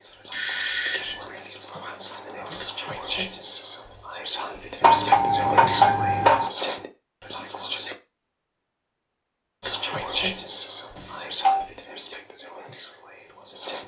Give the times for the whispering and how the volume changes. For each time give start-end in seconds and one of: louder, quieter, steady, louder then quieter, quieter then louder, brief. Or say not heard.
0.0-8.0 louder
9.6-13.8 quieter.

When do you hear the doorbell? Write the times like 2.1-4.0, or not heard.
0.3-1.2, 4.8-6.5, 10.9-11.7.